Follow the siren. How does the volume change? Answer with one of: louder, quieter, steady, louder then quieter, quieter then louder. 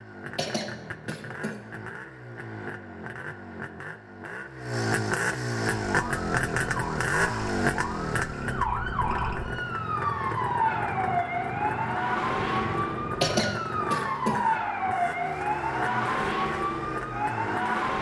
louder.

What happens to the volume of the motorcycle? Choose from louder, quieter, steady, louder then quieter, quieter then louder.
louder then quieter.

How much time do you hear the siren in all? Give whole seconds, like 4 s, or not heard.
12 s.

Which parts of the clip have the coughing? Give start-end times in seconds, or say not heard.
0.3-1.6, 13.2-14.4.